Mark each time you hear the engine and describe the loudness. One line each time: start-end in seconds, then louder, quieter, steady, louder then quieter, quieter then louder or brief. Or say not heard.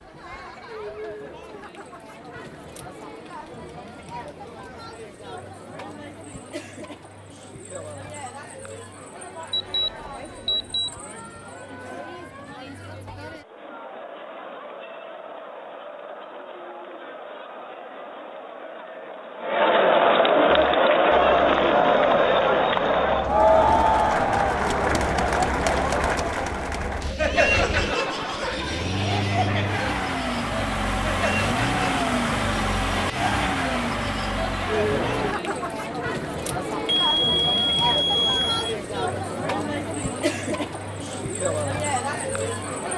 20.4-35.4 louder.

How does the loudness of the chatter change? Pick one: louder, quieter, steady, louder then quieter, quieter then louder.
louder then quieter.